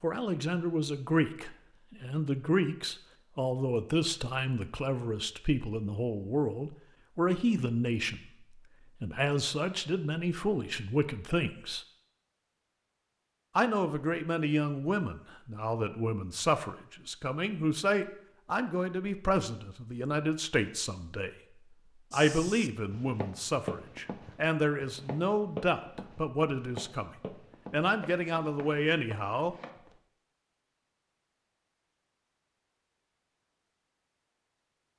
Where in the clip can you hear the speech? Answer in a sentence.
You can hear the speech from 0.0 to 11.8 s, from 13.6 to 21.3 s, from 22.1 to 27.1 s and from 27.7 to 29.6 s.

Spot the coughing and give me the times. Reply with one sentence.
The coughing can't be heard in this clip.